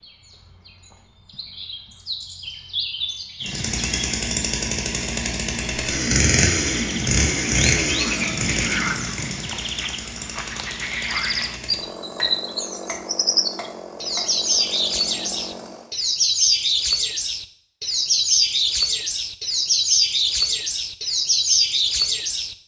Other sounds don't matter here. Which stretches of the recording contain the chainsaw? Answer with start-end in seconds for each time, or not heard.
3.5-15.9.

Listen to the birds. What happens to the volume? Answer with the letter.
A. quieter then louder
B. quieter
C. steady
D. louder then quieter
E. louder
E.